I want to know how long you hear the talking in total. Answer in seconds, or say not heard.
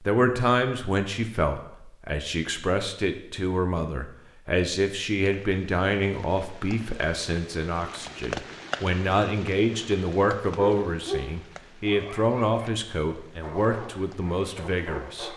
15 s.